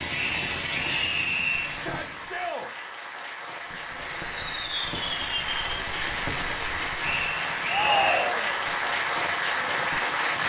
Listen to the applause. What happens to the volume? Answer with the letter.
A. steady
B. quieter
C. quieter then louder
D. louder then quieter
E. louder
E.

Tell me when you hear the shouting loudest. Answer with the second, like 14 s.
8 s.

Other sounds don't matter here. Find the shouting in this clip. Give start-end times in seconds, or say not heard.
1.7-2.7, 7.7-8.6.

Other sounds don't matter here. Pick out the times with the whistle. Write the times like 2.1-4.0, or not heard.
0.1-1.8, 7.0-8.2.